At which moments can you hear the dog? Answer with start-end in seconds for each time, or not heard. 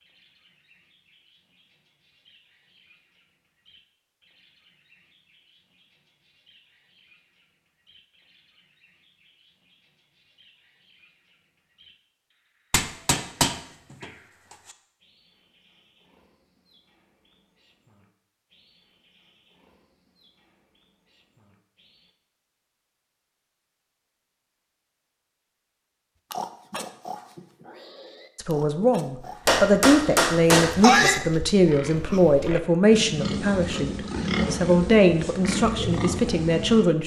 not heard.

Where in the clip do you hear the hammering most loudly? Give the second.
31 s.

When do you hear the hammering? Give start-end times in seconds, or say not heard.
12.7-14.1, 29.4-31.2.